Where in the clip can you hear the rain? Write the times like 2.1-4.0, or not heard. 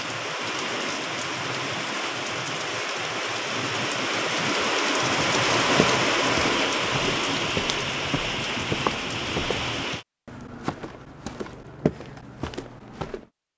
0.0-10.1.